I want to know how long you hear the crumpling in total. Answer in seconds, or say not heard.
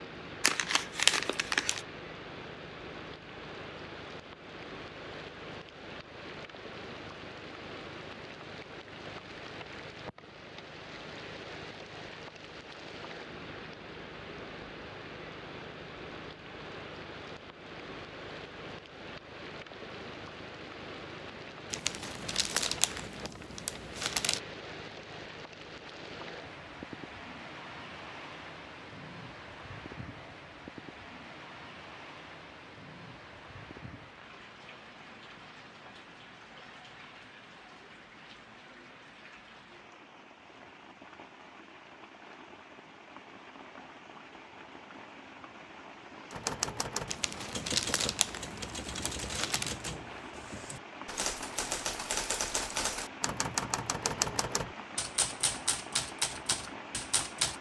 7 s.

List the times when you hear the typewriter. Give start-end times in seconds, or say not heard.
46.3-57.5.